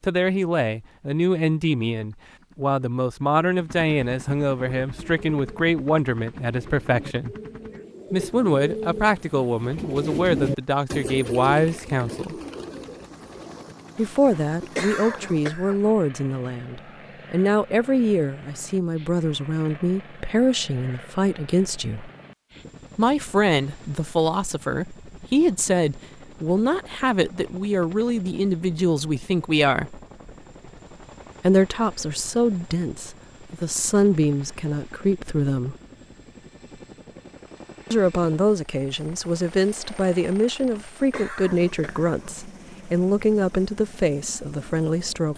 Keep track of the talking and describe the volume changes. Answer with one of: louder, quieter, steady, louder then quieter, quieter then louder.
steady.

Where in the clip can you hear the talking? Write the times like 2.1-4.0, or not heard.
0.0-7.3, 8.1-12.3, 13.9-22.1, 22.9-30.0, 31.4-35.8, 37.9-45.3.